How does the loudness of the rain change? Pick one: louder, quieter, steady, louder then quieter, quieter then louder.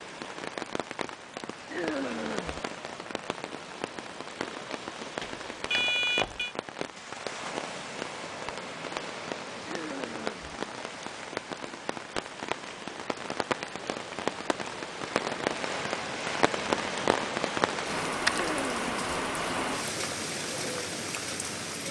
louder.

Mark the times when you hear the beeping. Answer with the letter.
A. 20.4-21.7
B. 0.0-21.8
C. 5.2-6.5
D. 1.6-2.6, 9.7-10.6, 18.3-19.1
C.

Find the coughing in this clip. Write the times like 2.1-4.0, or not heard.
1.6-2.6, 9.7-10.6, 18.3-19.1.